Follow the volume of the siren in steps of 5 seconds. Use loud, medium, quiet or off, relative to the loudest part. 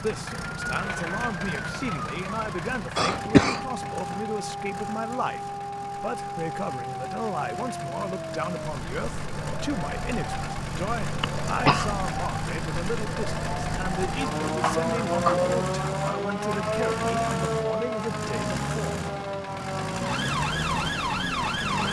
medium, medium, medium, loud, loud.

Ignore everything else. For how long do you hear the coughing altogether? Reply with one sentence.
The coughing can be heard for 2 seconds in total.